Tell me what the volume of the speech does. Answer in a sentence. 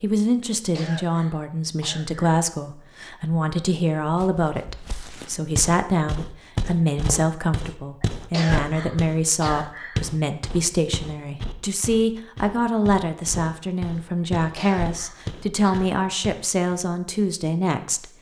The loudness of the speech stays about the same.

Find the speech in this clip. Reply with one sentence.
The speech can be heard from 0.0 to 18.1 s.